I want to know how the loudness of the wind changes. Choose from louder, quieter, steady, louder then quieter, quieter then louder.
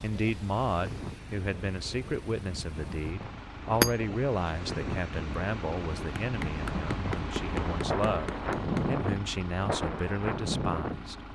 louder.